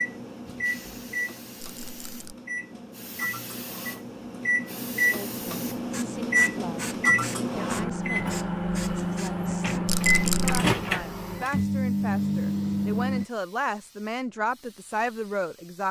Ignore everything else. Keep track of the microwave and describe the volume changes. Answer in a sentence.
The volume of the microwave goes up.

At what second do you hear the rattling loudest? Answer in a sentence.
The volume of the rattling peaks at 10 seconds.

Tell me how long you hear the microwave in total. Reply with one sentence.
The microwave can be heard for 13 seconds in total.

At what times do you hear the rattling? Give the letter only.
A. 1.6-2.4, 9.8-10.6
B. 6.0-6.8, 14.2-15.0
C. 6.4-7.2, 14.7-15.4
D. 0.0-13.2
A.